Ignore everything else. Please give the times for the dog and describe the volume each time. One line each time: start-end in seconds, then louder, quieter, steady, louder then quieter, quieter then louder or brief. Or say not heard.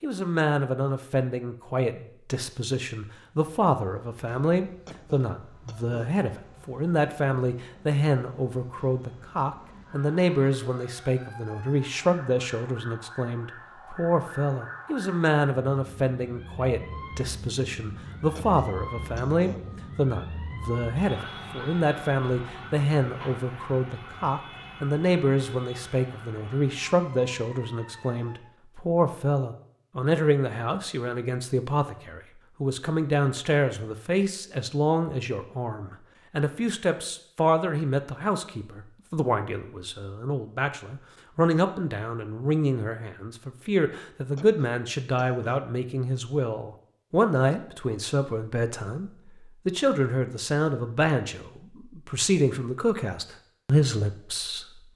not heard.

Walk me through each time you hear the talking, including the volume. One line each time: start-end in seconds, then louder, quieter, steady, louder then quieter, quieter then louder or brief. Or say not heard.
0.0-54.8 steady.